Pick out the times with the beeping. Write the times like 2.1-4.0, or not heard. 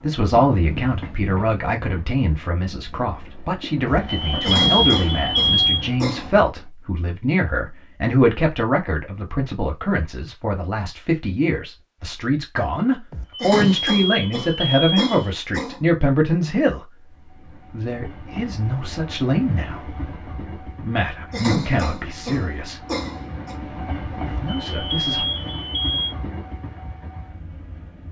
3.9-5.8, 13.1-15.3, 24.2-26.1.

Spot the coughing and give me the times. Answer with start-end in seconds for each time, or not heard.
4.4-6.3, 13.4-15.8, 21.3-23.6.